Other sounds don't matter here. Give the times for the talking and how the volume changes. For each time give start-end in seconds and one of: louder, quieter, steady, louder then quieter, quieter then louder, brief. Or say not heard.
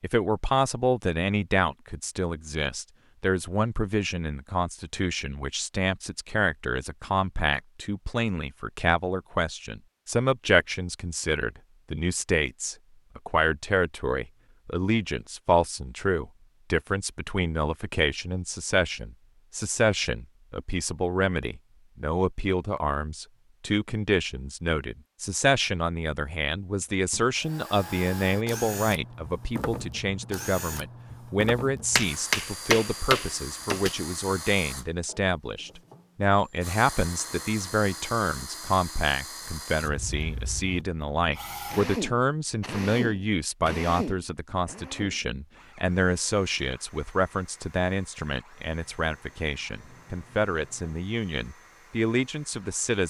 0.0-53.0 steady.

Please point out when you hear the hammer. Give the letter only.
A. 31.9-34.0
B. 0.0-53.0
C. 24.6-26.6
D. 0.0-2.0
A.